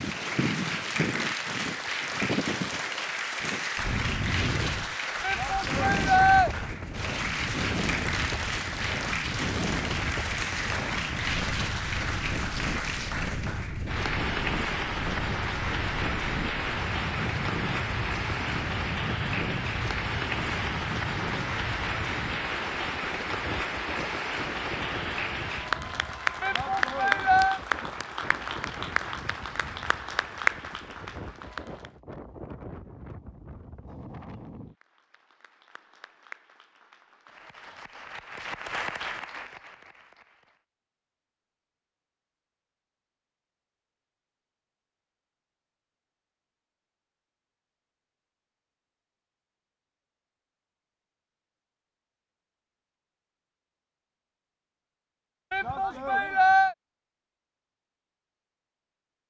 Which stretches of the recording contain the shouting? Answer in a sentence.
You can hear the shouting from 5.2 to 6.5 s, from 26.4 to 27.6 s and from 55.5 to 56.8 s.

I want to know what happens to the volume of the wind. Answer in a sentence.
The loudness of the wind goes down.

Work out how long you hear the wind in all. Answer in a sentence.
You can hear the wind for 35 seconds altogether.